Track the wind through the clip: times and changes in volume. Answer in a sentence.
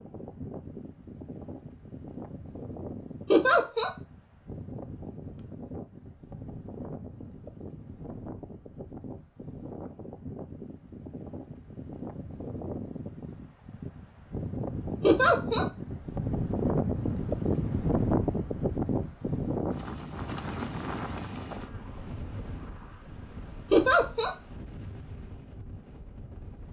The wind can be heard from 0.0 to 26.6 s, getting louder then quieter.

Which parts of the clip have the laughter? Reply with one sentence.
You can hear the laughter from 3.3 to 3.9 s, from 15.0 to 15.7 s and from 23.7 to 24.3 s.